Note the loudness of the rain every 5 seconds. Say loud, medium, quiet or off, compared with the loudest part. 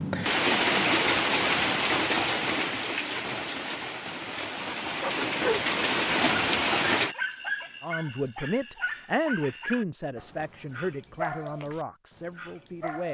loud, loud, off.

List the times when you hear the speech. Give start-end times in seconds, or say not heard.
7.8-13.0.